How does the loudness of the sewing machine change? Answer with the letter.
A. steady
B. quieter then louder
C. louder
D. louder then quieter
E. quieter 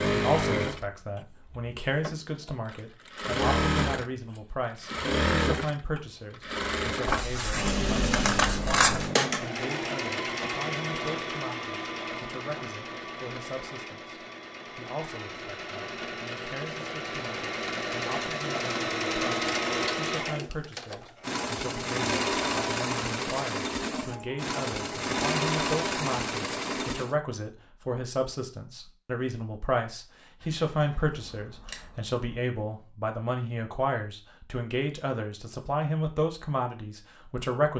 B.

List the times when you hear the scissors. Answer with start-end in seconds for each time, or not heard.
7.0-9.1, 30.4-32.1.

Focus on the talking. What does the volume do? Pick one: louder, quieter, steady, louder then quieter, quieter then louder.
quieter then louder.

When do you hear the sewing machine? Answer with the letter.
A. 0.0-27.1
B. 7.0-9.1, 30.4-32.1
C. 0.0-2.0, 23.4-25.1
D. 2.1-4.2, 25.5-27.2
A.